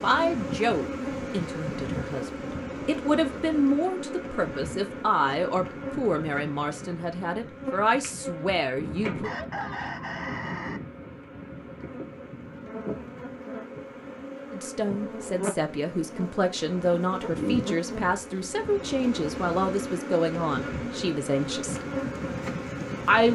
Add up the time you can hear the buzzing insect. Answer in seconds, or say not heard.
23 s.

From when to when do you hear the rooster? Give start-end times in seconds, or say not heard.
8.8-10.8.